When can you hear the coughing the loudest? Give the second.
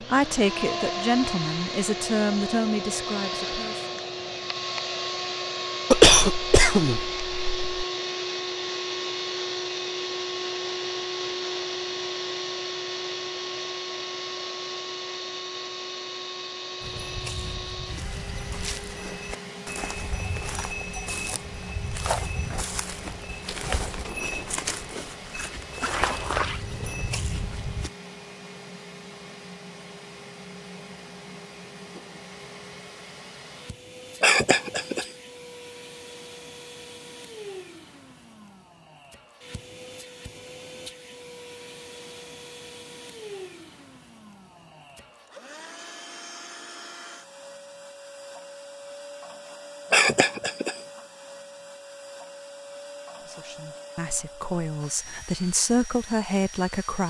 6 s.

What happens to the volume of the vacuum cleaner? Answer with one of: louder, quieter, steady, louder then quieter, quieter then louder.
quieter.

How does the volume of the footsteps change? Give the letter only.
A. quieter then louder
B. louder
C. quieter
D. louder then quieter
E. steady
B.